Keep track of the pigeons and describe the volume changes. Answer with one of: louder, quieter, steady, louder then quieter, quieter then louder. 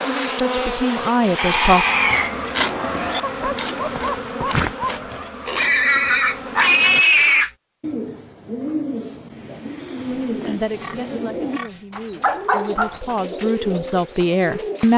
steady.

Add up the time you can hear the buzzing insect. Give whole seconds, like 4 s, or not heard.
7 s.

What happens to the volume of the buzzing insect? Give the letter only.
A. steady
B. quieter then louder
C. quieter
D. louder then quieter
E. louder
C.